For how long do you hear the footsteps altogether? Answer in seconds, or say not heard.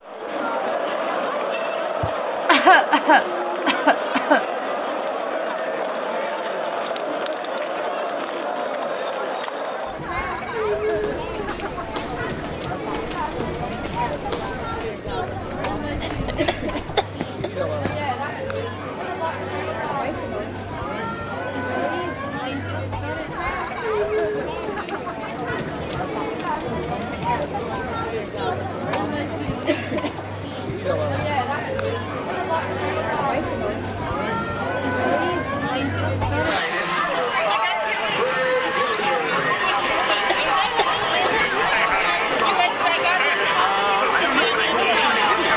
7 s.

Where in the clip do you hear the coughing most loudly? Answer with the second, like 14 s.
3 s.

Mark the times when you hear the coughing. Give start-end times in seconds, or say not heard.
2.0-4.4, 16.0-17.5, 39.8-41.3.